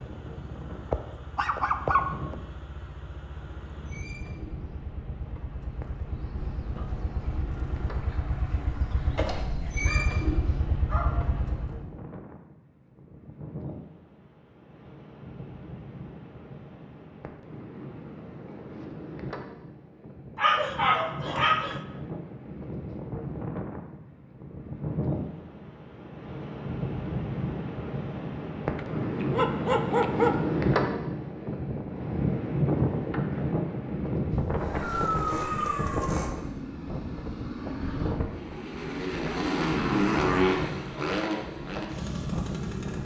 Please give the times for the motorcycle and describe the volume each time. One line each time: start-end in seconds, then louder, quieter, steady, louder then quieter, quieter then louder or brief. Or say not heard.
0.0-11.9 louder
34.5-43.0 louder then quieter.